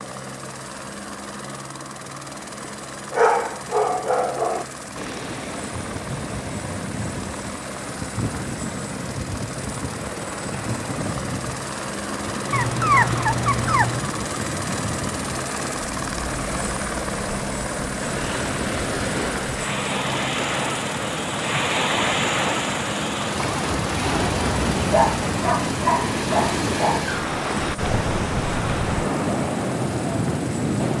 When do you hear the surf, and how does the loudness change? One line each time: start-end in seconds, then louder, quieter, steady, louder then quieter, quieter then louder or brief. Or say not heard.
5.0-30.9 louder.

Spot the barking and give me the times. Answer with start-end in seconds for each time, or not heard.
2.6-4.7, 12.5-14.1, 24.9-27.1.